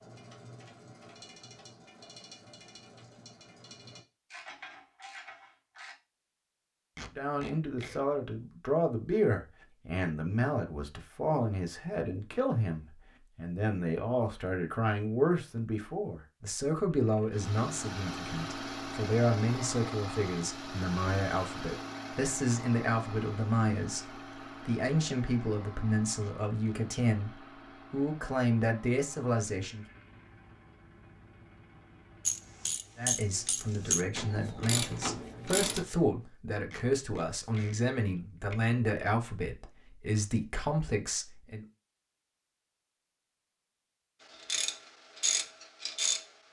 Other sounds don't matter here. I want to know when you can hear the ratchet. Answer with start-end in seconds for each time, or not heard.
0.0-6.0, 32.2-35.9, 44.3-46.2.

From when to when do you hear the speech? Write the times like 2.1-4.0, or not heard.
7.2-29.9, 33.0-41.6.